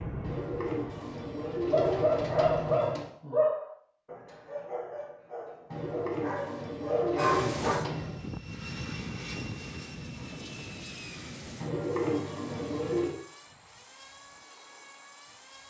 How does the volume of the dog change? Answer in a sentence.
The volume of the dog goes down, then up.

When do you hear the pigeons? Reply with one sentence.
The pigeons can be heard from 0.2 to 3.1 s, from 5.7 to 8.2 s and from 11.6 to 13.2 s.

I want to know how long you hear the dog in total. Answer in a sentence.
You can hear the dog for 6 seconds altogether.